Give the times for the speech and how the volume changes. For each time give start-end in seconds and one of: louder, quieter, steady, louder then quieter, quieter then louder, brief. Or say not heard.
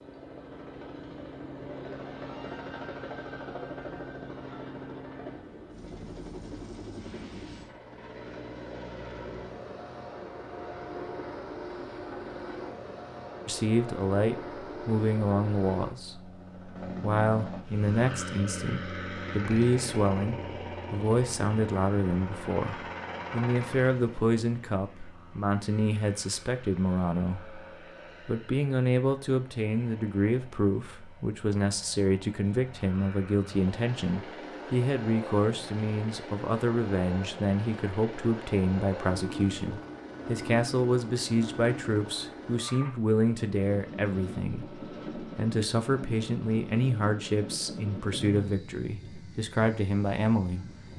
13.4-27.6 steady
28.2-50.8 steady.